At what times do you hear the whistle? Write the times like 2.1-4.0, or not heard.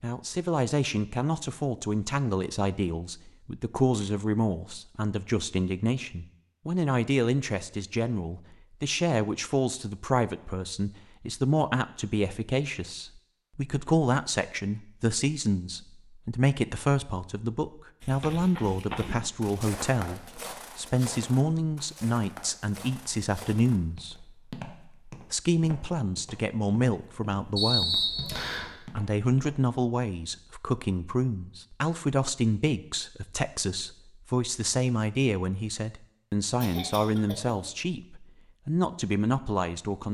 27.6-28.7.